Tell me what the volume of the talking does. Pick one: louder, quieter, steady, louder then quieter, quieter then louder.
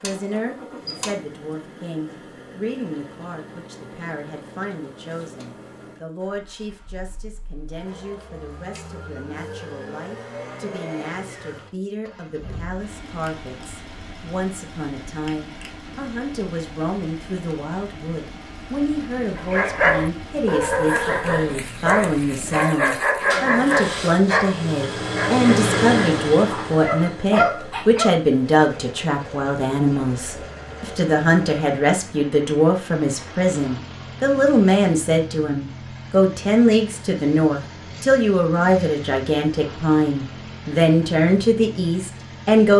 louder.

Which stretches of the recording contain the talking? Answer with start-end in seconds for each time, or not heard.
0.0-42.7.